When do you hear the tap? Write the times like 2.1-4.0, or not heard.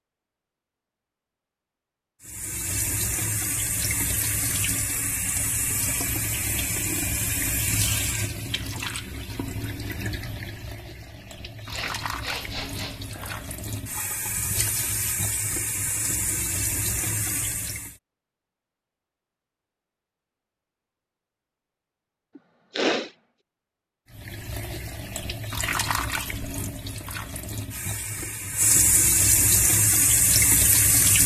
2.2-17.9, 24.1-31.2.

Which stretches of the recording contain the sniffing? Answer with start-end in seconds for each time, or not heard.
11.7-13.4, 22.4-23.1.